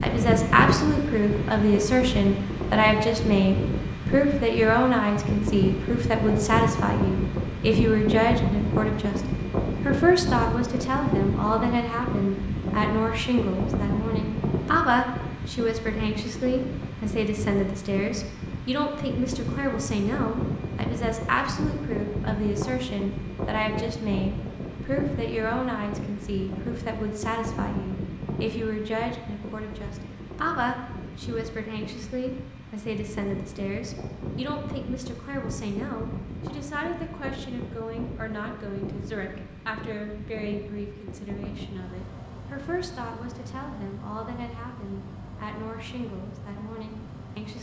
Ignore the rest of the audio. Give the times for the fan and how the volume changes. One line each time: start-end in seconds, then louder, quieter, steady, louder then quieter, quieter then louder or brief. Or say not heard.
0.0-47.5 quieter.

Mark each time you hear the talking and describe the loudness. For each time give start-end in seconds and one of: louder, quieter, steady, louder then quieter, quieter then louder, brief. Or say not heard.
0.0-47.5 quieter.